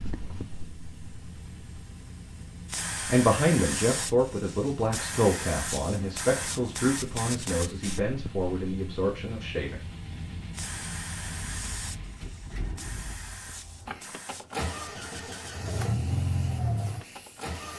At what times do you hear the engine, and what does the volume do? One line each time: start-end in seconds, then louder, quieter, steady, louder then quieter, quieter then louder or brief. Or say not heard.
0.0-17.7 louder.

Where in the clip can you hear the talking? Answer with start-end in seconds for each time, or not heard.
3.0-9.8.